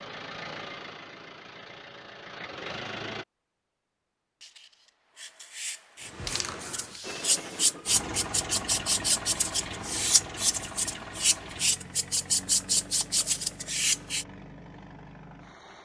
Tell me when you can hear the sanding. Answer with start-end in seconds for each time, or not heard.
4.4-14.2.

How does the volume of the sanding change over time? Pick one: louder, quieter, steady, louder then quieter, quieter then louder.
louder.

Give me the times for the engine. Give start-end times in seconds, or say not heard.
0.0-3.2, 7.0-15.7.